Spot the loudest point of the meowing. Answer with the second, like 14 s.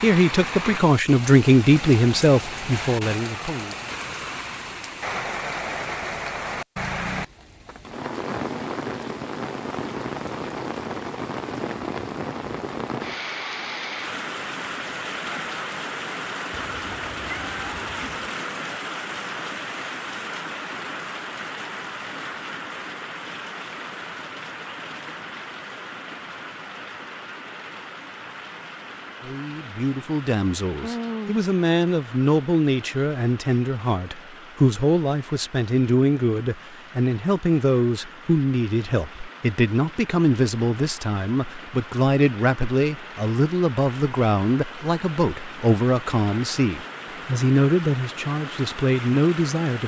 31 s.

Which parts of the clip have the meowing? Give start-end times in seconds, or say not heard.
16.5-18.3, 30.8-31.4.